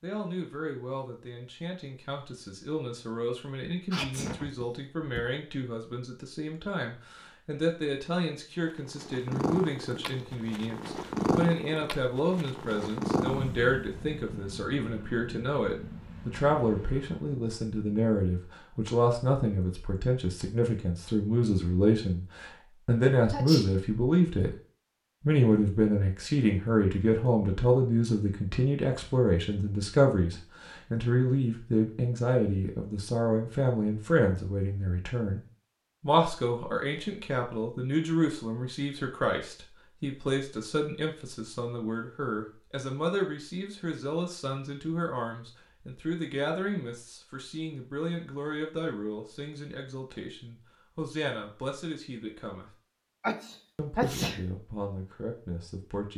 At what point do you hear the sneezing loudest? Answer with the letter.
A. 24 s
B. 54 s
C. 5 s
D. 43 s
B.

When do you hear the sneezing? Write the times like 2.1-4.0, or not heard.
3.9-5.2, 23.3-23.8, 53.2-54.4.